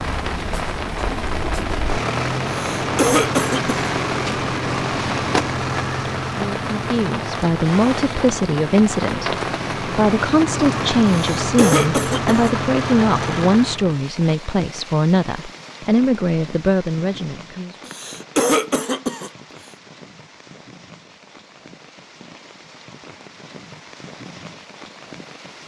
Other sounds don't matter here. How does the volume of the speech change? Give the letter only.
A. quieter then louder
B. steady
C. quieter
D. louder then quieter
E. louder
B.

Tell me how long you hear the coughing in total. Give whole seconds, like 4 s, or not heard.
4 s.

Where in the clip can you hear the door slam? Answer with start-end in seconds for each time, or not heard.
not heard.